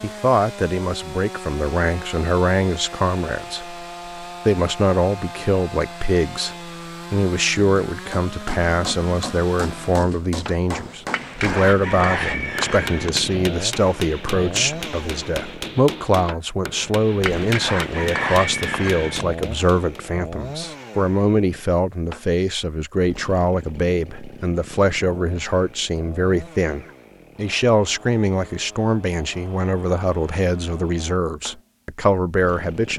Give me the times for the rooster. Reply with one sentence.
You can hear the rooster from 11.1 to 13.1 s and from 17.2 to 19.2 s.